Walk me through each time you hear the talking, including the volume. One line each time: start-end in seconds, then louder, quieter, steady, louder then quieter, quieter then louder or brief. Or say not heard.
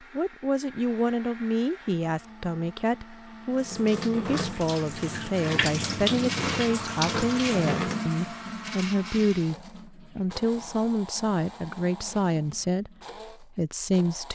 0.1-14.3 steady.